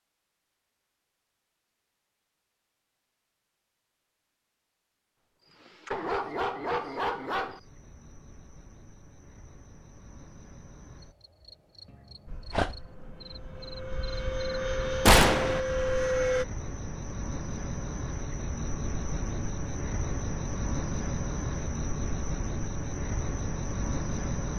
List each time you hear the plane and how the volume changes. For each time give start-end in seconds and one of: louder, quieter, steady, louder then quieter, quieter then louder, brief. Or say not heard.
12.2-16.4 louder.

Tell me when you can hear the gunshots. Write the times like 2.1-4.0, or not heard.
15.1-15.6.